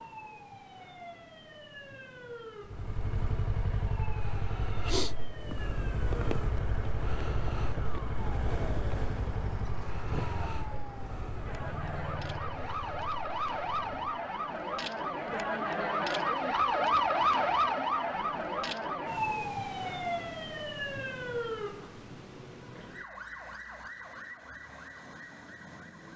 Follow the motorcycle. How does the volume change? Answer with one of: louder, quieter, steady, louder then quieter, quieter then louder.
quieter.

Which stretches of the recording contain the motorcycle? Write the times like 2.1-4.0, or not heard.
2.6-14.3.